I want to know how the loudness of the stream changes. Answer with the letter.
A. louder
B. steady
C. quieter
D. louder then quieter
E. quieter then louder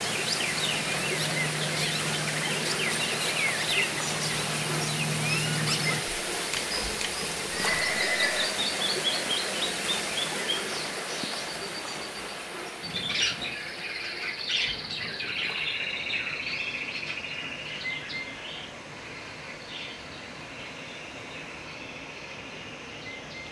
C.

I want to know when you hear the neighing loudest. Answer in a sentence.
The loudest moment of the neighing is at 8 seconds.